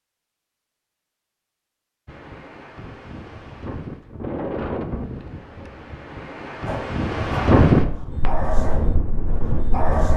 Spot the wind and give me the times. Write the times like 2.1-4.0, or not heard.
2.0-10.1.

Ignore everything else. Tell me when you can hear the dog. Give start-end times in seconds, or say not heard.
6.7-10.1.